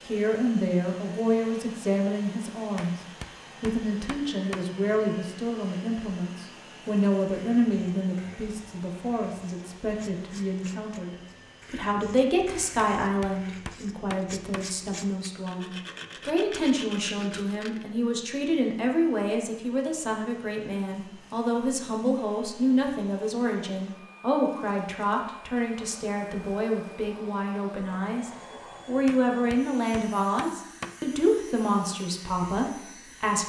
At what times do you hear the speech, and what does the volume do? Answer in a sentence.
You can hear the speech briefly from 0.1 to 3.0 s; and from 3.6 to 33.4 s, at a steady volume.